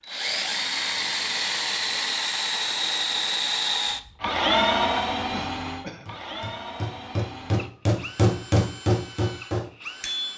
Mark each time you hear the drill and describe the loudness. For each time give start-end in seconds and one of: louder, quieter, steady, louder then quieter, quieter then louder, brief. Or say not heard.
0.0-10.3 quieter.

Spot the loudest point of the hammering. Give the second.
8 s.